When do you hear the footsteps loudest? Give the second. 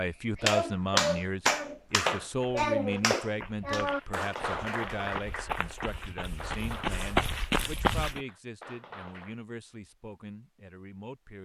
7 s.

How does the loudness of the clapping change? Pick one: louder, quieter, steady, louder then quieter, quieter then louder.
quieter.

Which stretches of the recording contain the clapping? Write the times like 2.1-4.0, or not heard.
0.3-9.3.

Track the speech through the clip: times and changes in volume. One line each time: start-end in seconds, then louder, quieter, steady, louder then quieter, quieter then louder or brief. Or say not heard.
0.0-11.4 quieter.